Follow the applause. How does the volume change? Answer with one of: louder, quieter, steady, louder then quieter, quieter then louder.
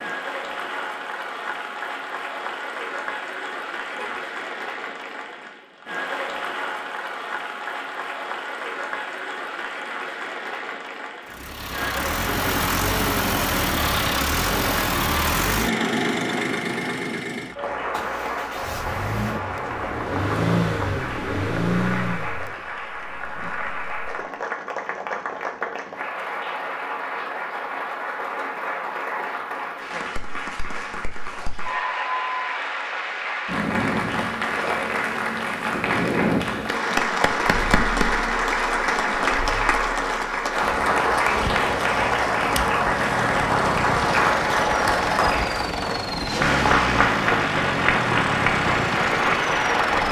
louder.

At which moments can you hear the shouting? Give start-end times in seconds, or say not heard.
not heard.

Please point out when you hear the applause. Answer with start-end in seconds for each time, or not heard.
0.0-50.0.